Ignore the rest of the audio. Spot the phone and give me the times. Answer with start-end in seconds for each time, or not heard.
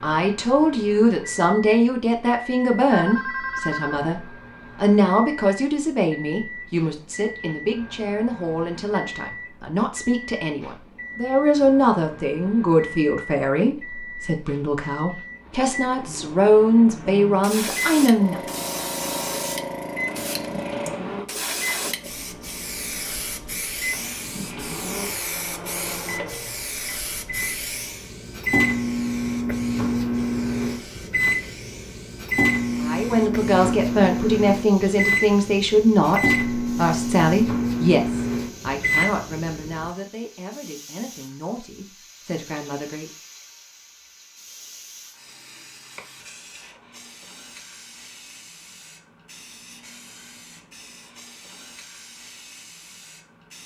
2.9-4.1.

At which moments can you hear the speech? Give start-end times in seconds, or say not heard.
0.0-18.4, 32.8-43.1.